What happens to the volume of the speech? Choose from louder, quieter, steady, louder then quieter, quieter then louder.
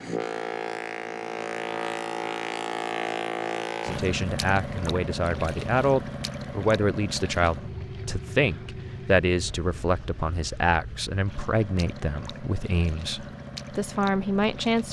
steady.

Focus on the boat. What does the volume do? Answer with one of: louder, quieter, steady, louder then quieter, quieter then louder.
quieter.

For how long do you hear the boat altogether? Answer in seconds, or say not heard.
15 s.